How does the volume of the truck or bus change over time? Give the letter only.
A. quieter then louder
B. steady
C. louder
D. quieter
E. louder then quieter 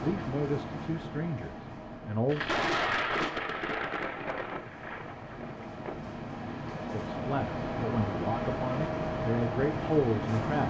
A.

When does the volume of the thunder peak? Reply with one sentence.
The volume of the thunder peaks at 3 seconds.